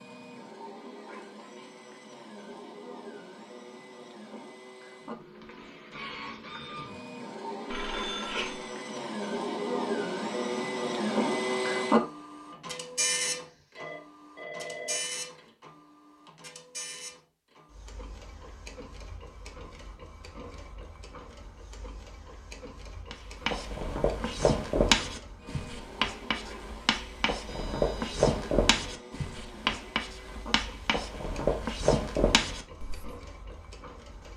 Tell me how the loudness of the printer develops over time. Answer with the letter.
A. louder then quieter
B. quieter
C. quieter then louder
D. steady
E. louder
A.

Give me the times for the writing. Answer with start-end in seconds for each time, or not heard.
23.1-33.1.